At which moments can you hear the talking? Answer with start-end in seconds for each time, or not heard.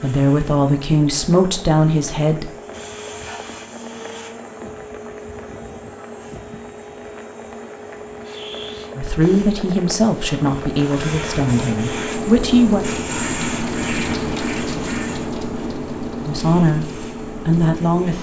0.0-2.5, 8.9-12.8, 16.2-18.1.